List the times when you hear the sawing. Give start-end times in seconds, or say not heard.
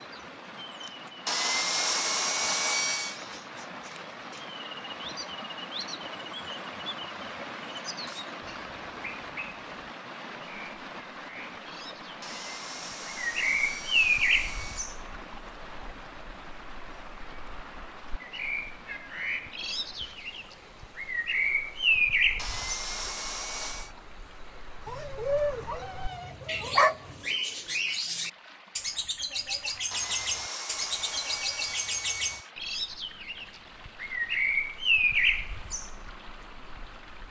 1.2-3.2, 12.2-14.9, 22.4-23.9, 29.9-32.5.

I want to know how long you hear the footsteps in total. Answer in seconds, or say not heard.
not heard.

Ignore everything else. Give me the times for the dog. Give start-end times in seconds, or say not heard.
24.9-27.2.